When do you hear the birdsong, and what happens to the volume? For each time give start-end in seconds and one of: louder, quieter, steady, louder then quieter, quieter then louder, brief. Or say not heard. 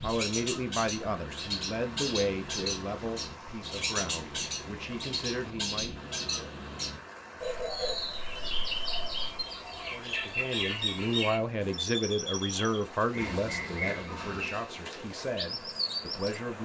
0.0-16.4 steady.